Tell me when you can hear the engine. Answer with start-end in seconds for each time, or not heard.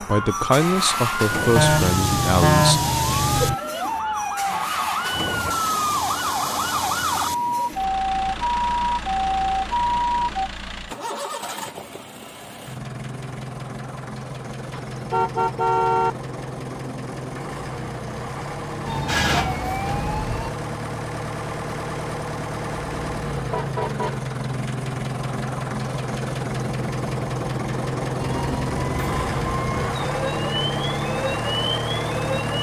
0.0-32.5.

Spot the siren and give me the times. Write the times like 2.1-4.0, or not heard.
0.0-10.5, 18.9-20.5, 28.1-32.5.